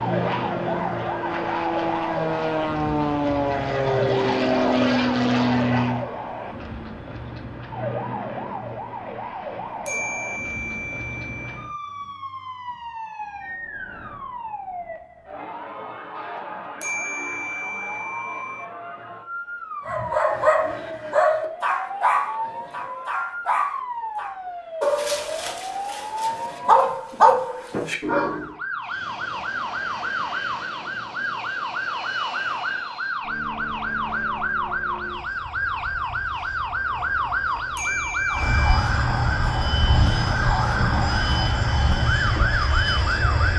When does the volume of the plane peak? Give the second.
5 s.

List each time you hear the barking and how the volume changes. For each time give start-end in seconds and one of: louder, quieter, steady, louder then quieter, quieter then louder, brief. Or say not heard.
19.9-28.5 quieter then louder.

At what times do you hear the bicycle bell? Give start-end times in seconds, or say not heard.
9.8-11.7, 16.8-18.6, 37.8-38.5.